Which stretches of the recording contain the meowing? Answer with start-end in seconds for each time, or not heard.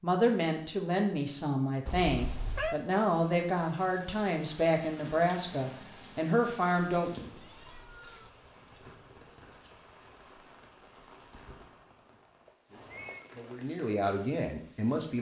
1.9-2.8, 7.0-8.3, 12.4-13.2.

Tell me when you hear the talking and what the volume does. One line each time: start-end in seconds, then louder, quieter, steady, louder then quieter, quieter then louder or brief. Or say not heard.
0.0-7.2 steady
12.7-15.1 brief.